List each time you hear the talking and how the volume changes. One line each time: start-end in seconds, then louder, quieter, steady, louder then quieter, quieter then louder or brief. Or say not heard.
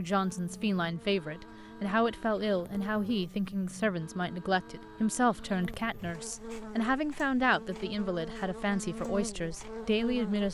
0.0-10.4 steady.